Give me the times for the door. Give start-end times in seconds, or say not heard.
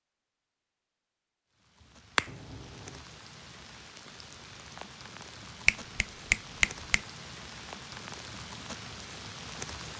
2.2-3.0.